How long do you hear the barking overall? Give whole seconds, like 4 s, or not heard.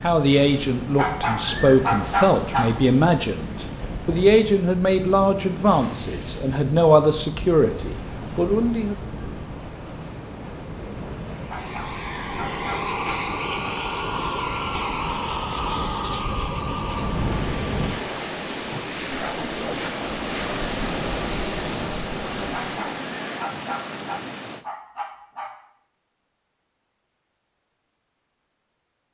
7 s.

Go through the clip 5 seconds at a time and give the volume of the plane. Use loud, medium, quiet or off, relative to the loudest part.
off, off, loud, loud, loud, off.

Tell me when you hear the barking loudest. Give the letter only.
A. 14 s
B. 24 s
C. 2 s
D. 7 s
C.